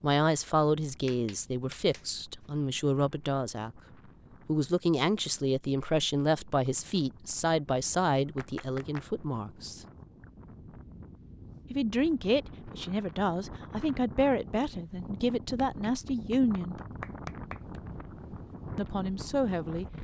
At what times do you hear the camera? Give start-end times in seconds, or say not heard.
not heard.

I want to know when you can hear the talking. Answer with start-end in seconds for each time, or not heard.
0.0-3.8, 4.5-9.8, 11.7-16.8, 18.8-19.9.